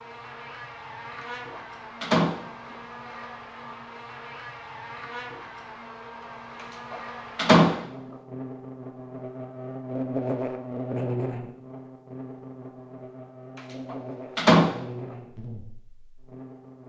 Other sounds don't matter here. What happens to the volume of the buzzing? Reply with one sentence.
The volume of the buzzing goes up, then down.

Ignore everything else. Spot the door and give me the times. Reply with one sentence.
You can hear the door from 1.2 to 2.4 s, from 6.9 to 7.8 s and from 13.9 to 14.7 s.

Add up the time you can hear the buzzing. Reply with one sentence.
You can hear the buzzing for 17 seconds altogether.